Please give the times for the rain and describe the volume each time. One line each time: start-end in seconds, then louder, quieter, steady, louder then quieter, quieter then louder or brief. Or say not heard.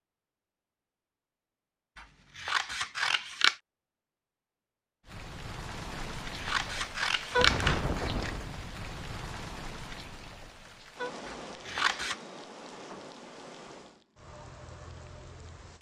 5.0-15.7 quieter.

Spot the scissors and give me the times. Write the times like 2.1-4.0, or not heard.
1.9-3.5, 6.0-8.3, 11.2-12.2.